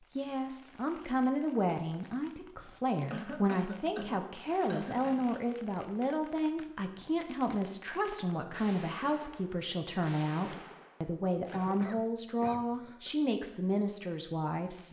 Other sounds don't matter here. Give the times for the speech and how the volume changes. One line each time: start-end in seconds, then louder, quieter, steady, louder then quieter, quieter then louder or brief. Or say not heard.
0.1-14.8 steady.